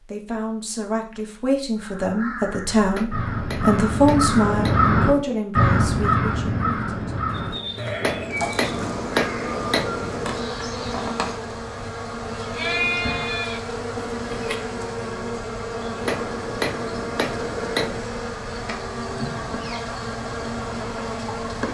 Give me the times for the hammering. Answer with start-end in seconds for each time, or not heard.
2.9-5.5, 8.0-10.4, 16.0-18.1.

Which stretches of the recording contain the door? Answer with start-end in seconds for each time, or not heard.
not heard.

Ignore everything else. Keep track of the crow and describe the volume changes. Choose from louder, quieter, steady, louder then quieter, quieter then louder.
louder then quieter.